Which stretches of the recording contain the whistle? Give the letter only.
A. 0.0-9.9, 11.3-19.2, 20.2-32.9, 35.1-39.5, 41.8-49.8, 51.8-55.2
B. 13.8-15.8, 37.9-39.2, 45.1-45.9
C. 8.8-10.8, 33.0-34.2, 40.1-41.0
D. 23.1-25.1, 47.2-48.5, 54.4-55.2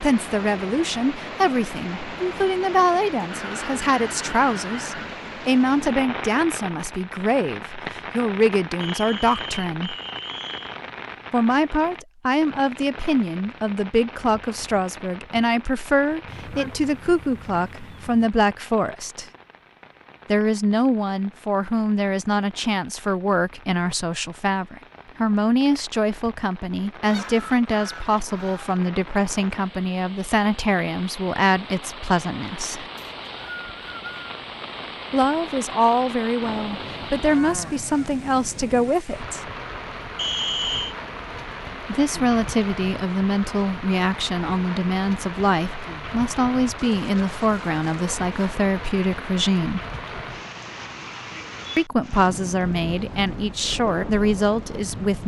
C.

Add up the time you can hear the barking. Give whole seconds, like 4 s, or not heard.
not heard.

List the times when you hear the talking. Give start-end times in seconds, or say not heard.
0.0-9.9, 11.3-19.2, 20.2-32.9, 35.1-39.5, 41.8-49.8, 51.8-55.2.